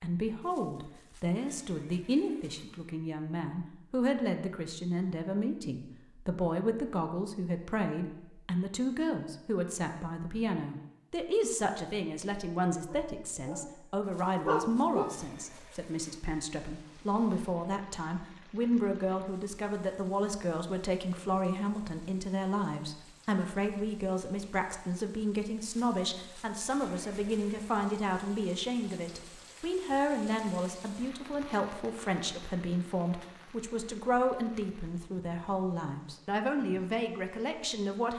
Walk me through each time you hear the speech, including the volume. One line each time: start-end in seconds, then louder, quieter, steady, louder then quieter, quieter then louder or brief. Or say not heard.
0.0-38.1 steady.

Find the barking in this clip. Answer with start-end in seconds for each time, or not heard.
12.8-13.7, 14.4-15.2.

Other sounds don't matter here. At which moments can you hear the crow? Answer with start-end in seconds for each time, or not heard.
not heard.